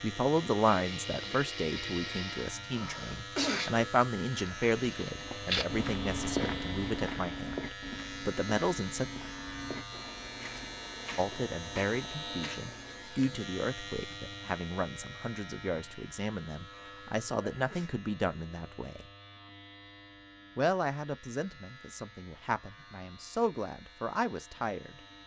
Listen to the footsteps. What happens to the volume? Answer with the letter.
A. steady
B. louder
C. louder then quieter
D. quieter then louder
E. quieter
E.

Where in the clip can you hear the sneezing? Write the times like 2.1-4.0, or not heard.
2.7-3.8, 17.5-18.0.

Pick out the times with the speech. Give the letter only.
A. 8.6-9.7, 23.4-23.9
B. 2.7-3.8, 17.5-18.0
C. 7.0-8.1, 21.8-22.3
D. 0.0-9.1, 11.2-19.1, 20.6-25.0
D.